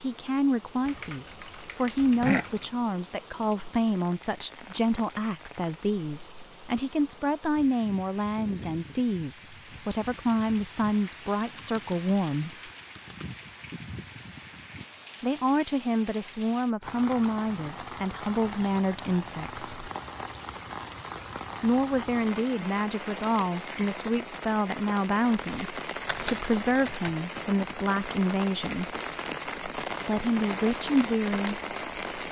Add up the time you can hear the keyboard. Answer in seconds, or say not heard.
5 s.